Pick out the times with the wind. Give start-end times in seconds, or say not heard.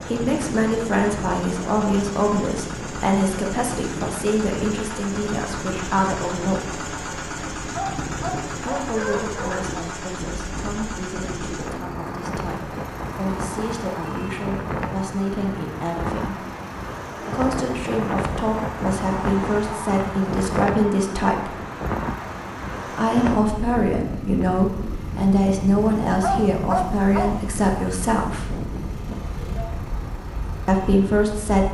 0.0-31.6.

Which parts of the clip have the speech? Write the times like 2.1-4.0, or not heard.
0.1-6.8, 8.6-16.4, 17.1-21.5, 22.9-28.5, 30.6-31.6.